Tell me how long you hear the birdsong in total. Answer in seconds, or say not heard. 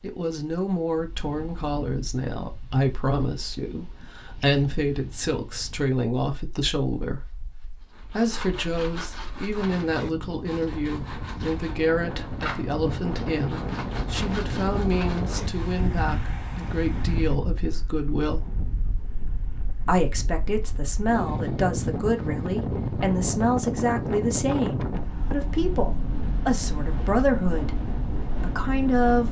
not heard.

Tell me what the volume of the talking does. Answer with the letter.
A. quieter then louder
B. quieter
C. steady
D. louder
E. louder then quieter
C.